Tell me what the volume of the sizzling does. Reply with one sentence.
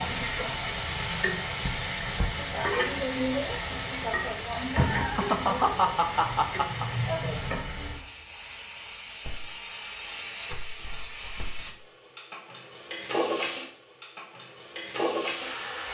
The volume of the sizzling goes down, then up.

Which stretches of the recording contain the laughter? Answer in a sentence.
The laughter can be heard from 4.8 to 6.8 s.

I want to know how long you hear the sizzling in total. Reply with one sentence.
The sizzling can be heard for 16 seconds in total.